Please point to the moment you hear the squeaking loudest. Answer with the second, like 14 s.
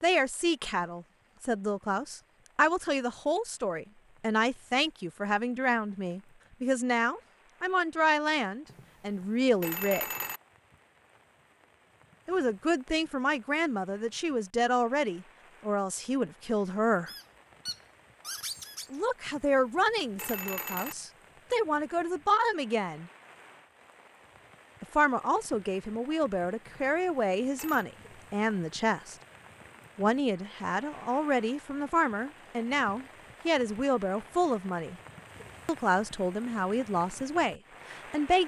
18 s.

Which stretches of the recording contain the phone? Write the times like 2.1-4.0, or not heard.
8.7-10.4, 19.2-20.9, 26.6-27.9.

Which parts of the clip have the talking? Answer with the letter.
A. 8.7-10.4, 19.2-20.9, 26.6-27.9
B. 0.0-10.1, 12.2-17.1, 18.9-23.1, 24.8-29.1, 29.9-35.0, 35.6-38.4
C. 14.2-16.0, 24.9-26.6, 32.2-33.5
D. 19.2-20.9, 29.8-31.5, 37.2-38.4
B.